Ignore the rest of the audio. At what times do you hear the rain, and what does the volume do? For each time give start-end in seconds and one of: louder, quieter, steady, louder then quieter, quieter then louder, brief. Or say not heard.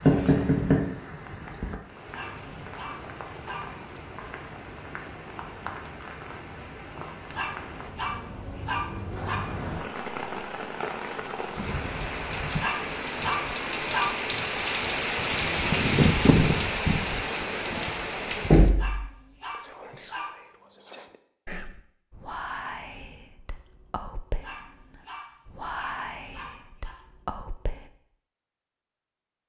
0.0-18.7 louder.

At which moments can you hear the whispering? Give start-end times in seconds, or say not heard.
19.4-27.9.